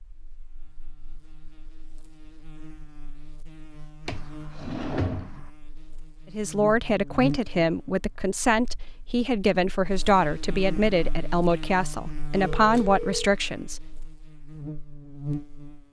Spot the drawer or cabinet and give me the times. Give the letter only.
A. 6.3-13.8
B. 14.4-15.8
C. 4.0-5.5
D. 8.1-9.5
C.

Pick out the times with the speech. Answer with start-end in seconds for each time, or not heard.
6.3-13.8.